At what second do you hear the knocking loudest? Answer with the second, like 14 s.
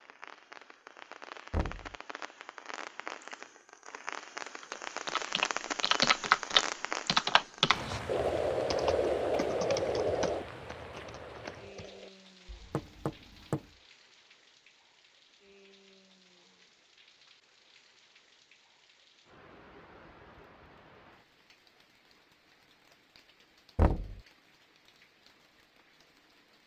24 s.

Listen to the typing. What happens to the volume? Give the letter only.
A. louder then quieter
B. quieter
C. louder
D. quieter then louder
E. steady
B.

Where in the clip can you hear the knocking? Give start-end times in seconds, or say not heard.
1.5-1.9, 12.7-13.6, 23.8-24.2.